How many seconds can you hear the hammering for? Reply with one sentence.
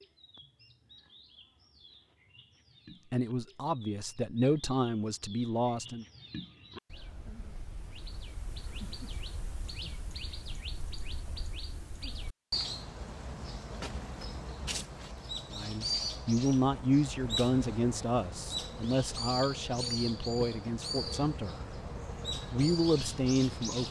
You can't hear the hammering here.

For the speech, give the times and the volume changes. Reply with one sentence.
You can hear the speech briefly from 3.1 to 6.0 s; from 15.5 to 21.8 s, getting quieter; and briefly from 22.5 to 23.8 s.